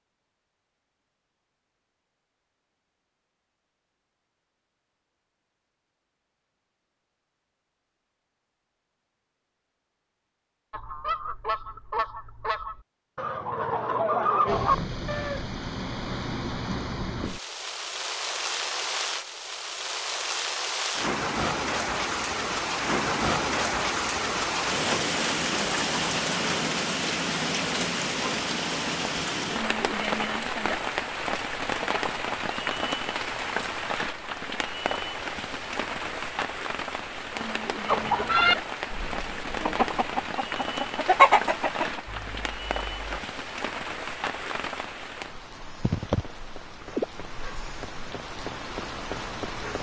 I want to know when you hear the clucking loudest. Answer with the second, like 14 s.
41 s.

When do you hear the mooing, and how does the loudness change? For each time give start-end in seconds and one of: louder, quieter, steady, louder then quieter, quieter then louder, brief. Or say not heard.
not heard.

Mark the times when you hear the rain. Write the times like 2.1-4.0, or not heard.
14.4-49.7.